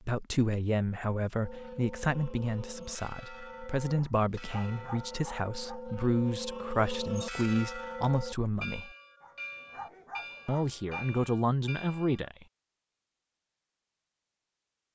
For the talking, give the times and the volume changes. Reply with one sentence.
The talking can be heard from 0.1 to 8.9 s, at a steady volume; and briefly from 10.4 to 12.4 s.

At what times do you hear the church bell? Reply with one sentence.
You can hear the church bell from 1.4 to 12.3 s.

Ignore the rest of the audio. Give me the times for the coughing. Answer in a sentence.
You can't hear the coughing here.